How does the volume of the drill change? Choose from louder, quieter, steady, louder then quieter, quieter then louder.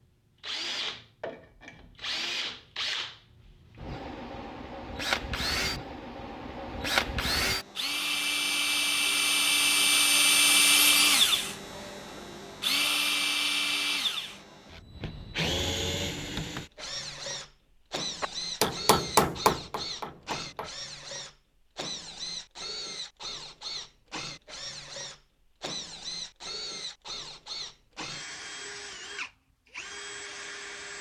louder then quieter.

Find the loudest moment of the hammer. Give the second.
19 s.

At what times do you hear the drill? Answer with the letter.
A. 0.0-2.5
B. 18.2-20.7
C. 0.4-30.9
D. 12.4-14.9
C.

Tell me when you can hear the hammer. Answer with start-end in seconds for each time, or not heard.
18.2-20.7.